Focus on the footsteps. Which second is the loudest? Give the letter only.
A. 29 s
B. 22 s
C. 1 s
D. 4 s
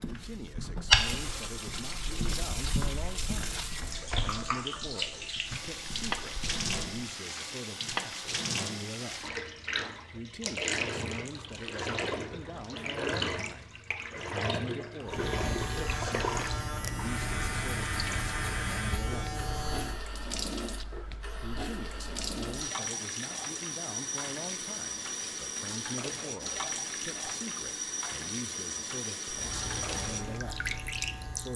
C.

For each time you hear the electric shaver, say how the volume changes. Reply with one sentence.
You can hear the electric shaver from 15.1 to 20.1 s, at a steady volume; and briefly from 29.3 to 31.5 s.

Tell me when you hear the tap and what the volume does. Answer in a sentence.
The tap can be heard from 0.0 to 31.5 s, at a steady volume.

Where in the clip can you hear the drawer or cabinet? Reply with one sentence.
You can't hear the drawer or cabinet here.